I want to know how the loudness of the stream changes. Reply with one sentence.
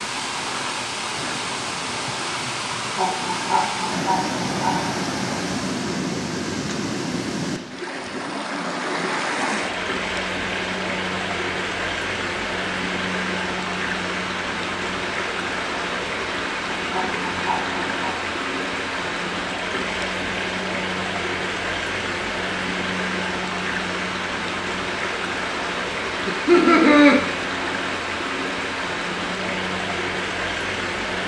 The loudness of the stream stays about the same.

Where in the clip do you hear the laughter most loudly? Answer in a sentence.
The volume of the laughter peaks at 27 seconds.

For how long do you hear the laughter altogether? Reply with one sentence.
You can hear the laughter for 4 seconds altogether.